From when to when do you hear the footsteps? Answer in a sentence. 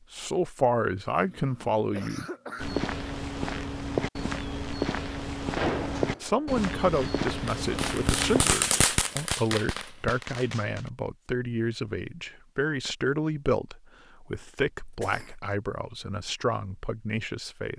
The footsteps can be heard from 2.5 to 8.4 s.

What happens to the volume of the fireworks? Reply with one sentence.
The volume of the fireworks goes up, then down.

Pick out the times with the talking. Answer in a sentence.
The talking can be heard from 0.1 to 2.2 s and from 6.2 to 17.7 s.